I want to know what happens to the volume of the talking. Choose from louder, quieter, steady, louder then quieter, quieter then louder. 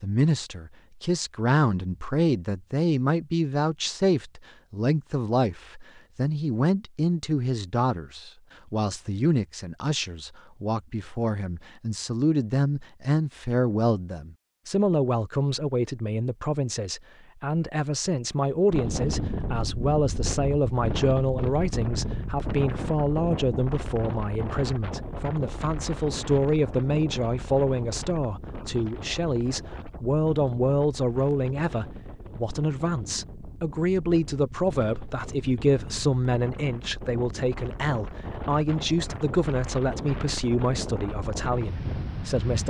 steady.